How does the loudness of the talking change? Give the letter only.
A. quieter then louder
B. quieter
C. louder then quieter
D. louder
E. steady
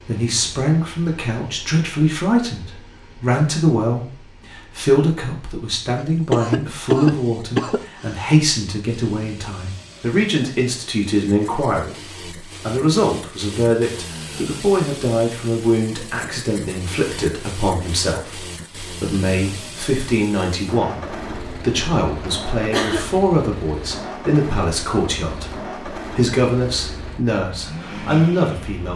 E.